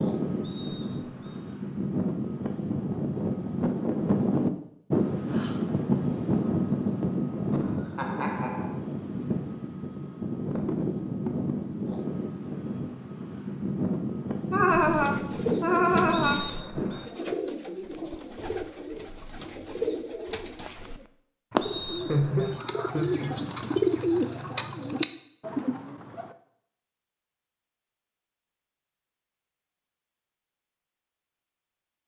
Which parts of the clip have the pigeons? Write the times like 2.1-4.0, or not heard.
14.7-26.4.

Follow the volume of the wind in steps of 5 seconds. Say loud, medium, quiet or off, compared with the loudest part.
loud, loud, loud, loud, off, off, off.